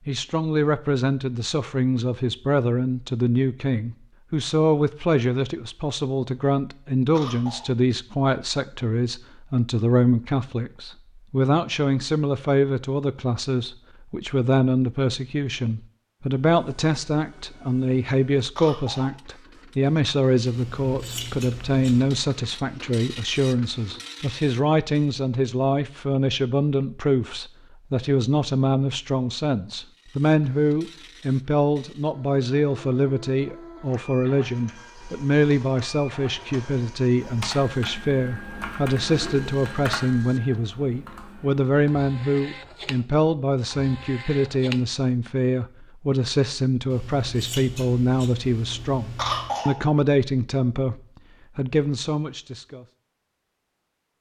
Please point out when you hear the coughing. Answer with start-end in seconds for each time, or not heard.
7.2-7.7, 18.6-19.2, 49.1-49.8.